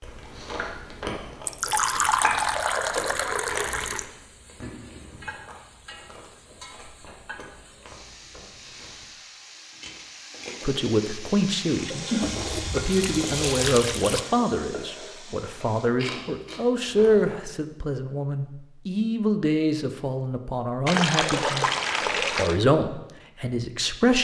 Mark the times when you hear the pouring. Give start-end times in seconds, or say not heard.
1.4-4.0, 12.2-14.2, 20.9-22.6.